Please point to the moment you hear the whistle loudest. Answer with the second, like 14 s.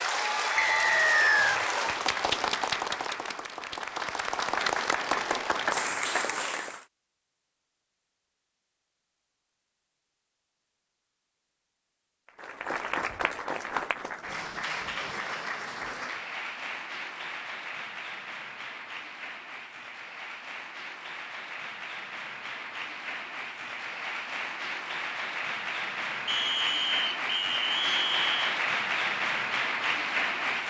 1 s.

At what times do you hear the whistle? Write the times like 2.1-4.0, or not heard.
0.6-1.6, 26.2-28.4.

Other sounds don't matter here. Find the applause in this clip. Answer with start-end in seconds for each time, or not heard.
0.0-6.8, 12.2-30.6.